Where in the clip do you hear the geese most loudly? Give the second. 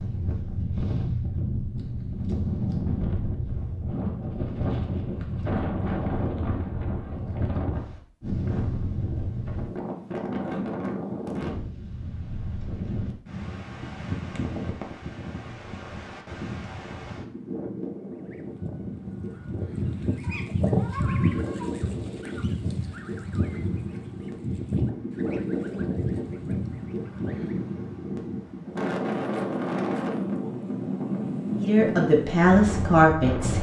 21 s.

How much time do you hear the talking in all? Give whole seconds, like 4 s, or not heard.
2 s.